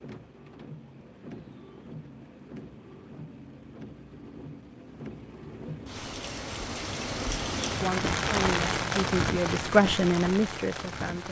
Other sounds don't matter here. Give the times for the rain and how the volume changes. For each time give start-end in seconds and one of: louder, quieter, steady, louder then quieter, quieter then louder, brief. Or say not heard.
0.0-11.2 louder.